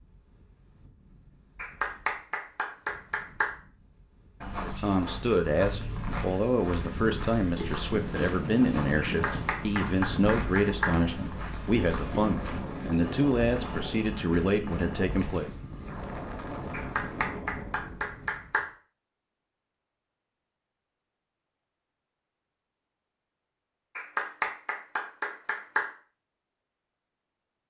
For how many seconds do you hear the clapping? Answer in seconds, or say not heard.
8 s.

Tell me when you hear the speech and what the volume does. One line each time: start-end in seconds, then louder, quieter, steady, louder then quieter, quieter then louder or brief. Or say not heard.
4.6-15.5 steady.